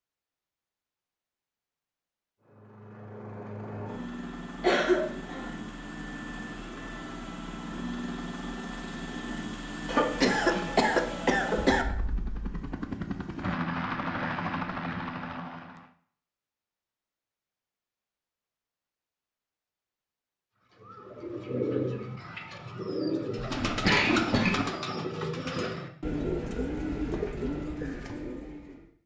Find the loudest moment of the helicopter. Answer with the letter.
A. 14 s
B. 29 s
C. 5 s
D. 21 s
A.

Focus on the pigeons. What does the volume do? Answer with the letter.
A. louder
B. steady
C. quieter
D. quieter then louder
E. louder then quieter
B.